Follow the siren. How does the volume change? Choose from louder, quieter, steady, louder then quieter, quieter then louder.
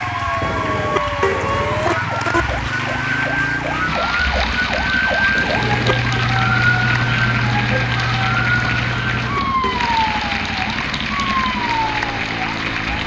louder then quieter.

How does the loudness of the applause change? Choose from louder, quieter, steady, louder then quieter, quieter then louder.
steady.